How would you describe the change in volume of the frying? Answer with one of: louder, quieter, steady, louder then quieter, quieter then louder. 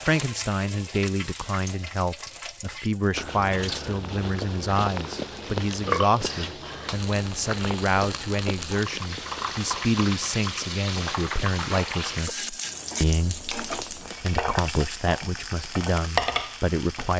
louder.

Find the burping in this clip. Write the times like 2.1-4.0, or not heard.
5.8-7.0.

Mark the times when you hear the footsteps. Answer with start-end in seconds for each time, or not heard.
3.1-14.2.